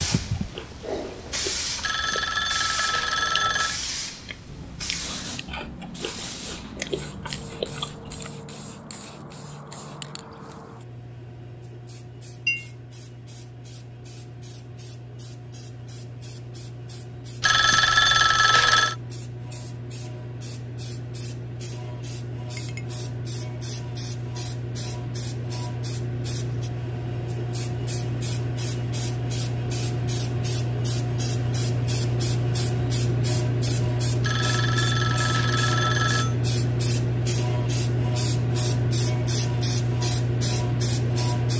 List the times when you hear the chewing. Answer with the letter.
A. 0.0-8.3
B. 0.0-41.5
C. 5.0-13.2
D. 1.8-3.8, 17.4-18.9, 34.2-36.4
A.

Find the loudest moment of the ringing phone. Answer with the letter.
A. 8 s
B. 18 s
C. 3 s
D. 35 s
B.